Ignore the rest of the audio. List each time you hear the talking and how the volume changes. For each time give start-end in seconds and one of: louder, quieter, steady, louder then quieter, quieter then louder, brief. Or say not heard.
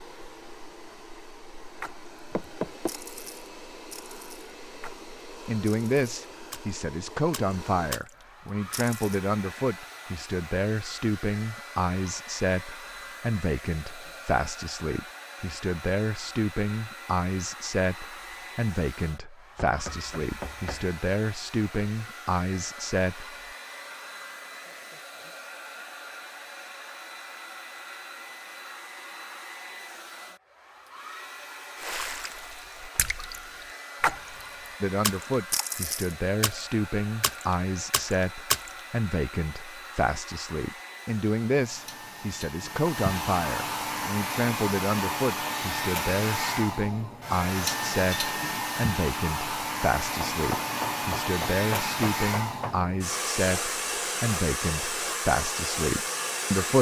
5.5-23.4 steady
34.8-56.7 steady.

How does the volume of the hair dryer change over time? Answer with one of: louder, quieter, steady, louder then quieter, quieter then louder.
louder.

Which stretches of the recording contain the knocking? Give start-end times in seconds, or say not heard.
2.3-3.0, 19.6-20.9, 50.1-52.9.